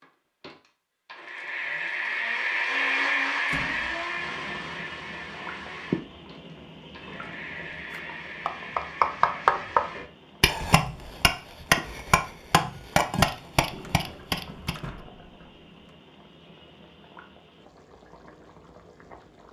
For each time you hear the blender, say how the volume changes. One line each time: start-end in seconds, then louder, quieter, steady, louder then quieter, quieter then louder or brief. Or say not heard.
0.0-10.1 louder then quieter.